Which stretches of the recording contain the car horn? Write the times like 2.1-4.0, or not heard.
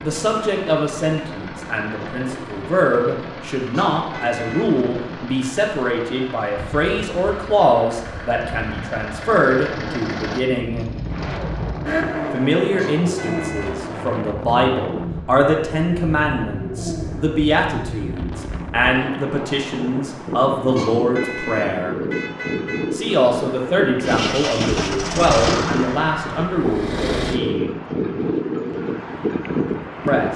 3.7-4.7, 12.8-13.8, 20.8-22.9.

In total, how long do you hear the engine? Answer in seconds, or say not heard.
22 s.